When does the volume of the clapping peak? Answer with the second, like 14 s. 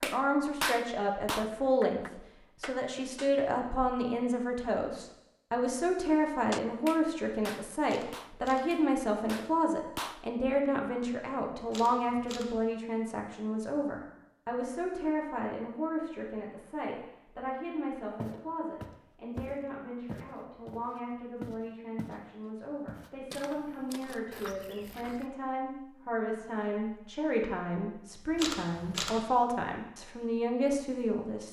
1 s.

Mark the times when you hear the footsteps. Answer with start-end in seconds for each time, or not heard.
18.1-22.2, 22.9-25.2.